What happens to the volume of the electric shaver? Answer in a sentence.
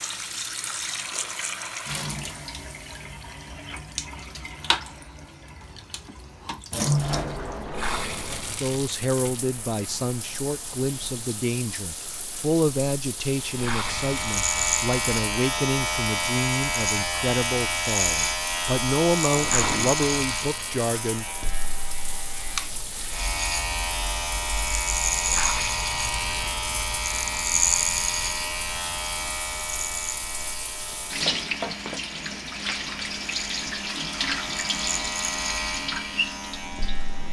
The volume of the electric shaver goes down.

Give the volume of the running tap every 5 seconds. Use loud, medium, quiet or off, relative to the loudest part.
loud, loud, medium, medium, medium, medium, loud, loud.